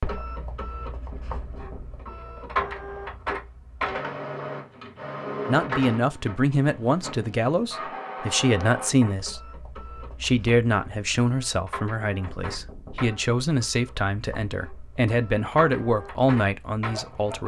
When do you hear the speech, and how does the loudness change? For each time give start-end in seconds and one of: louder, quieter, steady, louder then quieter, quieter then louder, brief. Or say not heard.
5.5-17.4 steady.